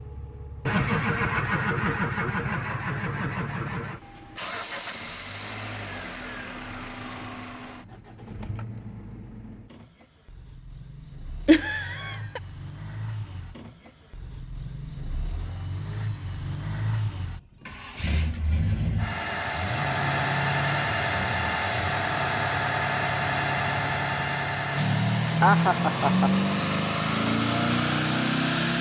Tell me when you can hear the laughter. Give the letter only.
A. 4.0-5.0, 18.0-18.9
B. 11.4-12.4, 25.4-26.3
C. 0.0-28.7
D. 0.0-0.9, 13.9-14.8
B.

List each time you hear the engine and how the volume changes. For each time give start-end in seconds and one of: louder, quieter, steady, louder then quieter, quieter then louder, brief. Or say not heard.
0.0-28.7 quieter then louder.